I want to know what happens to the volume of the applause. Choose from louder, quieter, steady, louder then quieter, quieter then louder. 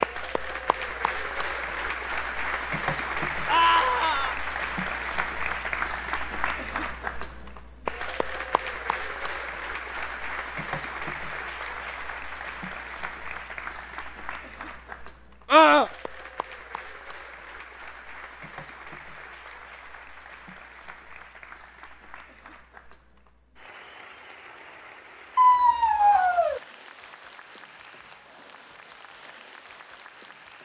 quieter.